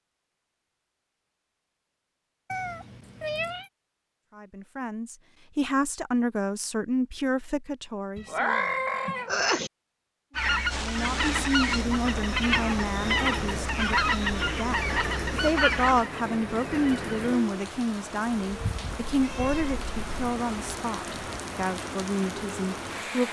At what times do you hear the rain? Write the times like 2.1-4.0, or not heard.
10.7-23.2.